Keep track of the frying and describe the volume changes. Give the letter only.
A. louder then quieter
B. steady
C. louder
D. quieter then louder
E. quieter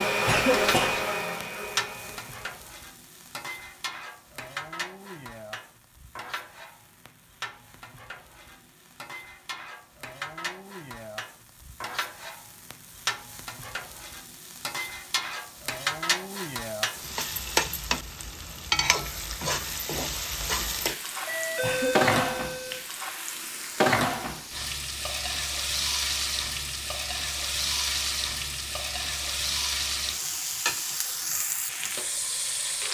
C.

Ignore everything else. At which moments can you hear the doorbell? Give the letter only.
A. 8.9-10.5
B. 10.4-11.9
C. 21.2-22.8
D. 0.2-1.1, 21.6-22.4
C.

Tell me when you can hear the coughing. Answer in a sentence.
You can hear the coughing from 0.2 to 1.1 s and from 21.6 to 22.4 s.